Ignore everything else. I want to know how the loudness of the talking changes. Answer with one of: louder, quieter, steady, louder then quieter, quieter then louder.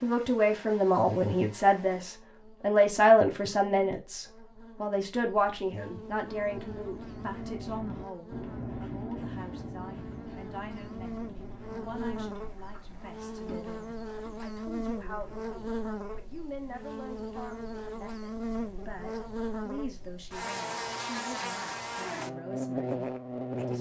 quieter.